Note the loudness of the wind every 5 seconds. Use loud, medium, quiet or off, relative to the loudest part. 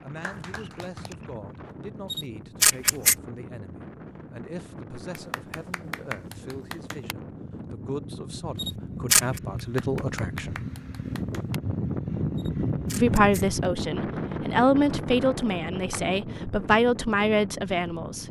quiet, medium, loud, medium.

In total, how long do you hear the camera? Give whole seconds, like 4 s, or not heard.
3 s.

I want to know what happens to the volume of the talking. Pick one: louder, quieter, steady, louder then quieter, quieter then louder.
louder.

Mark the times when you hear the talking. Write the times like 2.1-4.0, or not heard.
0.0-10.6, 12.9-18.2.